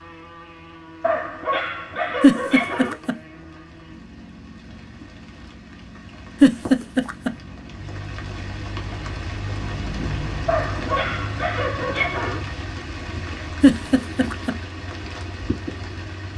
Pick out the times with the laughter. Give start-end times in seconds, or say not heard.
2.2-3.1, 6.4-7.3, 13.6-14.6.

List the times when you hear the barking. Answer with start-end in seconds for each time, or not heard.
1.0-3.0, 10.4-12.4.